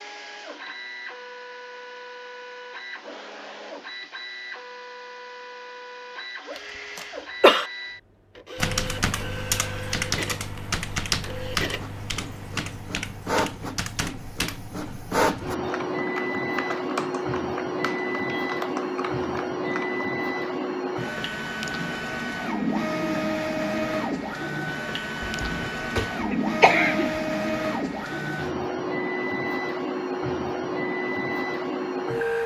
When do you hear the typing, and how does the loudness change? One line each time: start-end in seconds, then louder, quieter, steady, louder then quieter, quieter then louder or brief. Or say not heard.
8.6-20.1 quieter.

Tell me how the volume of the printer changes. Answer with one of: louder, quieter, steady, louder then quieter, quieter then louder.
louder.